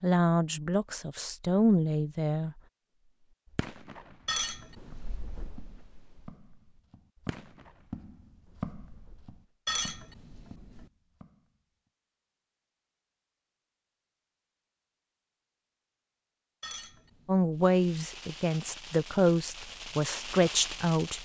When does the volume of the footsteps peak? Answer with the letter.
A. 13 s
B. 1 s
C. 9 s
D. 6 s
C.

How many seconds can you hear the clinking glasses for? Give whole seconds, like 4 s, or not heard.
3 s.